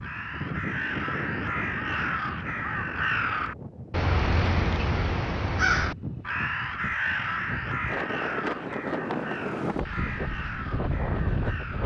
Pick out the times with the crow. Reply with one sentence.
You can hear the crow from 0.0 to 11.8 s.